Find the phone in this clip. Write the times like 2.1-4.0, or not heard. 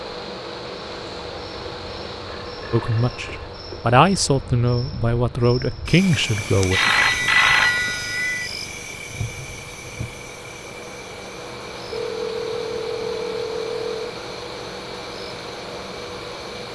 2.5-3.8, 6.7-8.5, 11.9-14.2.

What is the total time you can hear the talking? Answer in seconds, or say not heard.
4 s.